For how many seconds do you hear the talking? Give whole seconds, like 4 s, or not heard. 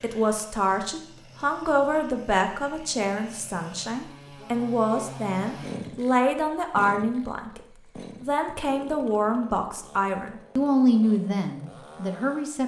12 s.